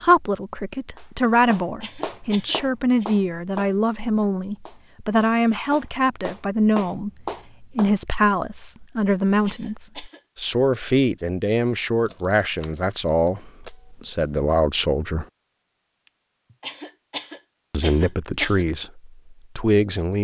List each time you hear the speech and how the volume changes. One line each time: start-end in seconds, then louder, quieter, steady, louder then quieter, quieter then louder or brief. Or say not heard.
0.0-15.2 steady
17.7-20.2 brief.